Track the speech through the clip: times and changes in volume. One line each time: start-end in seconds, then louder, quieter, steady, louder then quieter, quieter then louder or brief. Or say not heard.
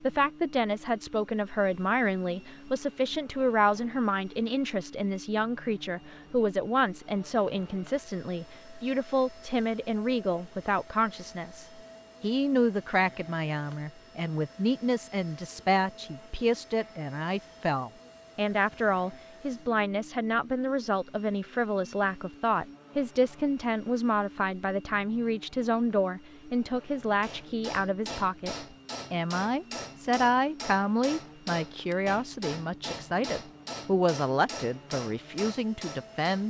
0.0-36.4 steady.